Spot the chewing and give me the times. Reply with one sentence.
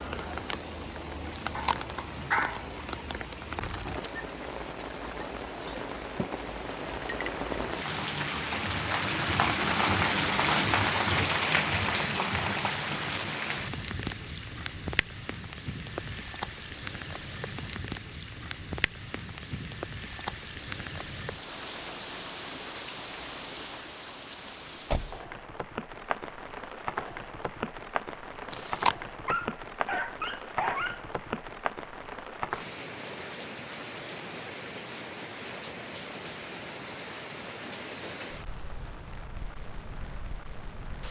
The chewing can be heard from 1.3 to 1.8 s and from 28.5 to 28.9 s.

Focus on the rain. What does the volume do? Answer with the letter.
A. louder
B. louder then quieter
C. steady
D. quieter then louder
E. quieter
B.